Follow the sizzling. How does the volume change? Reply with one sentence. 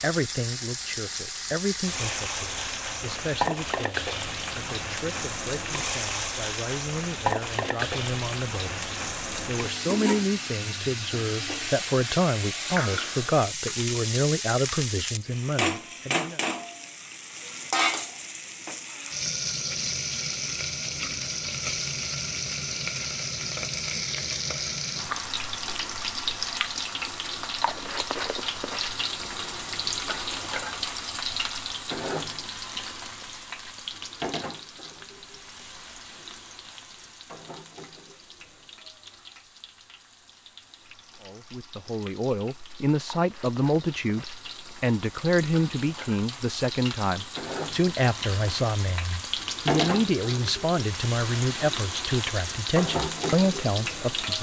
The volume of the sizzling goes down, then up.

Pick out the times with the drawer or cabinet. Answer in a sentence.
The drawer or cabinet can't be heard in this clip.